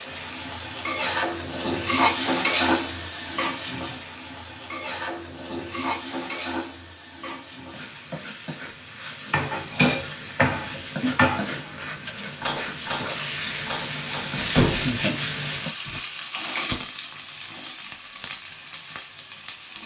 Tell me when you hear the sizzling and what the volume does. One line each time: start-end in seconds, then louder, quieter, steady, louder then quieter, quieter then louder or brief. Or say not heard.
0.0-19.8 quieter then louder.